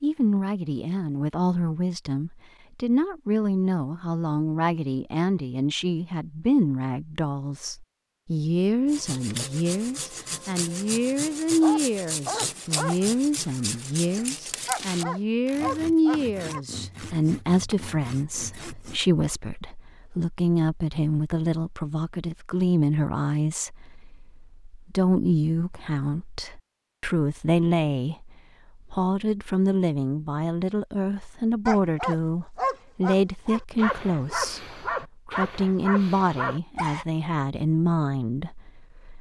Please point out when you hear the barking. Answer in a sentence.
You can hear the barking from 11.6 to 16.6 s and from 31.6 to 37.0 s.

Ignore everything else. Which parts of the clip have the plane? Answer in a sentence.
You can't hear the plane here.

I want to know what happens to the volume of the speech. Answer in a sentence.
The loudness of the speech stays about the same.